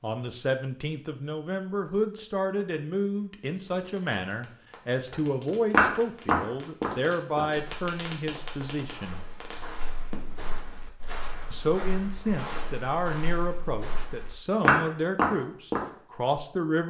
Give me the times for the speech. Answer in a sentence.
You can hear the speech from 0.0 to 9.2 s and from 11.5 to 16.8 s.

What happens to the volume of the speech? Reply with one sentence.
The loudness of the speech stays about the same.